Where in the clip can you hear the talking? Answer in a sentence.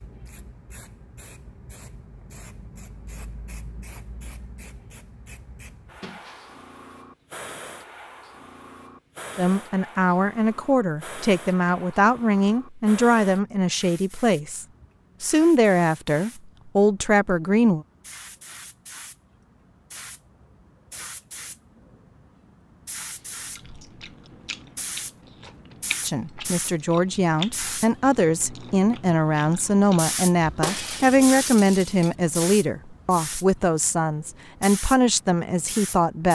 The talking can be heard from 9.3 to 17.9 s and from 26.1 to 36.3 s.